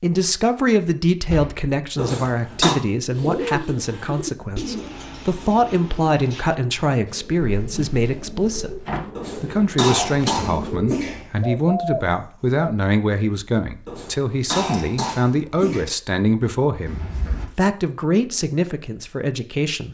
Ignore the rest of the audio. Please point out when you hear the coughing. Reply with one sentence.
You can hear the coughing from 1.9 to 2.8 s, from 9.2 to 11.2 s and from 13.8 to 15.9 s.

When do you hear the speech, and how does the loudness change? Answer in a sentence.
The speech can be heard from 0.0 to 19.8 s, at a steady volume.